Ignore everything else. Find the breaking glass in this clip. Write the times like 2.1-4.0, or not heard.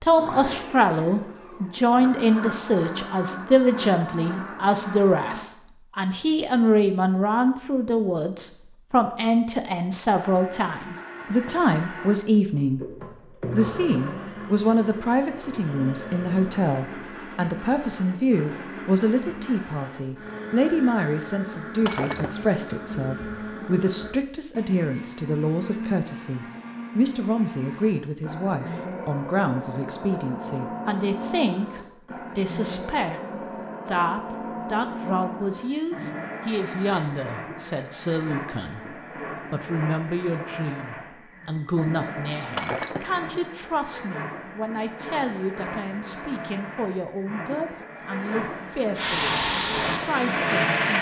21.9-22.9, 42.5-43.3.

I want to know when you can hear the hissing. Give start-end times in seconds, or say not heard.
49.0-50.9.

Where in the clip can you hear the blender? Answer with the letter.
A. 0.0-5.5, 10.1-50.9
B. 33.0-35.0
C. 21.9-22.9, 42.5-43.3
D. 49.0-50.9
A.